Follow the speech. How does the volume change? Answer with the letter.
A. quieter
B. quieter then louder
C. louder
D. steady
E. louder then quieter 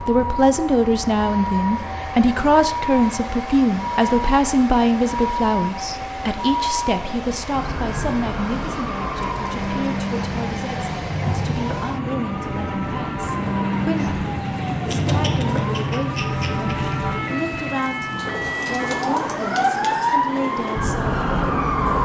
A.